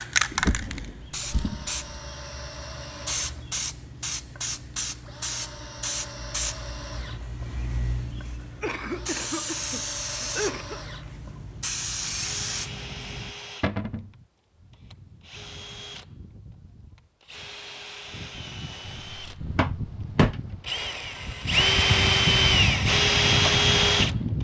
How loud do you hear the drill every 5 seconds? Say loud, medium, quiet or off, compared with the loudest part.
quiet, quiet, quiet, quiet, loud.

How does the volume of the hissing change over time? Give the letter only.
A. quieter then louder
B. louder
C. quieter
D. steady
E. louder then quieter
D.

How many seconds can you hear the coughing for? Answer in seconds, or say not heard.
2 s.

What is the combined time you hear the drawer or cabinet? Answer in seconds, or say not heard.
3 s.